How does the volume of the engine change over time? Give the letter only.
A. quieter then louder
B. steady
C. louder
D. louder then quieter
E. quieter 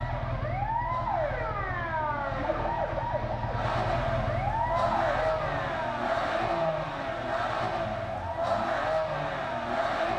C.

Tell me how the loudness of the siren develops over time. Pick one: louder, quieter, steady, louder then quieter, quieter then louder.
quieter.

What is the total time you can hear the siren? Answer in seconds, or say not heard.
10 s.